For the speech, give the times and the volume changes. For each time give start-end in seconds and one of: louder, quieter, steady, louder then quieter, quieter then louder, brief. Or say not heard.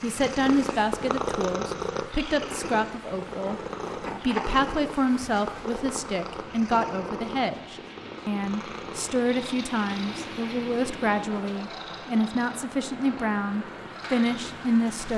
0.0-15.1 steady.